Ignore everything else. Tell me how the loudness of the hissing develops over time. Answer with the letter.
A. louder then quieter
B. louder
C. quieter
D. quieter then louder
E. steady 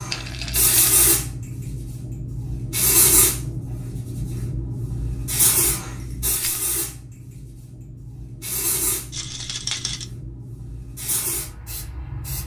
C.